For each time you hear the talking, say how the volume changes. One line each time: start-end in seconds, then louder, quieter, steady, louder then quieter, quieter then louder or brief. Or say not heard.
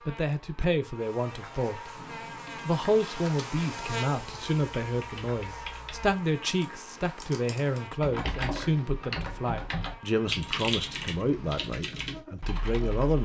0.1-1.9 brief
2.6-13.2 steady.